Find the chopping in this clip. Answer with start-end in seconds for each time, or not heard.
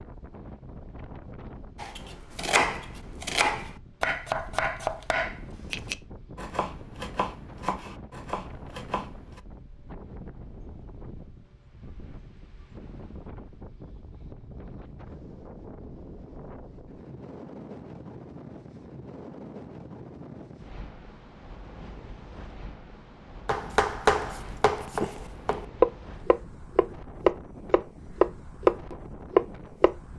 1.8-9.4, 23.4-29.9.